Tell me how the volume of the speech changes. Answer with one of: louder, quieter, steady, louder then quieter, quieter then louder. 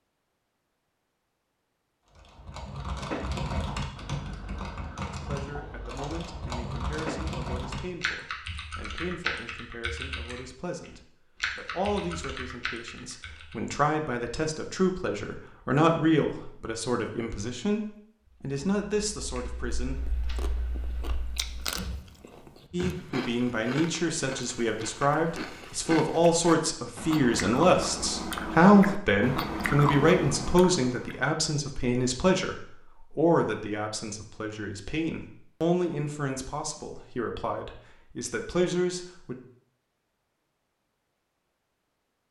louder then quieter.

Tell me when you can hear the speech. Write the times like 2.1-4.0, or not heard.
5.1-20.0, 22.7-39.4.